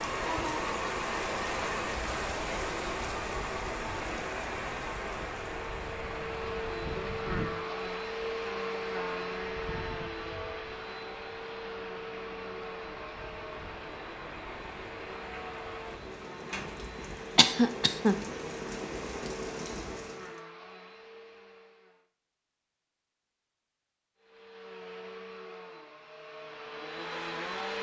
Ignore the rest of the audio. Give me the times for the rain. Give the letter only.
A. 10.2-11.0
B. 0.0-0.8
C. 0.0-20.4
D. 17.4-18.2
C.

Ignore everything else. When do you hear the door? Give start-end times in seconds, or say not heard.
not heard.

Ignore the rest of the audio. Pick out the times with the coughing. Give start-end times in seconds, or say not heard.
17.4-18.2.